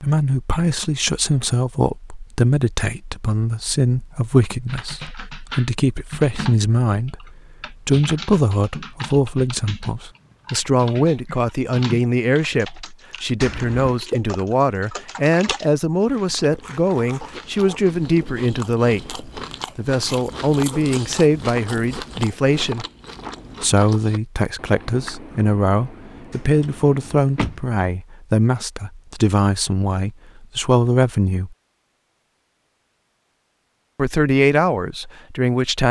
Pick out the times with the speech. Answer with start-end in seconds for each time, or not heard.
0.0-22.9, 23.6-31.6, 34.0-35.8.